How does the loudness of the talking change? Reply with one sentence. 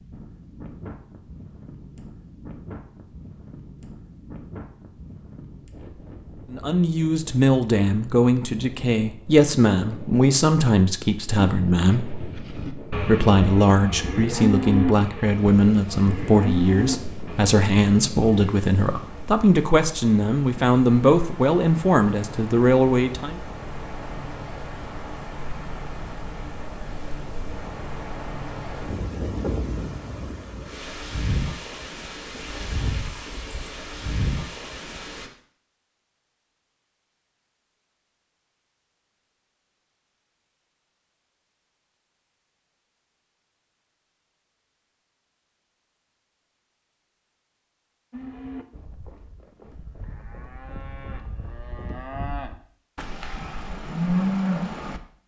The volume of the talking stays about the same.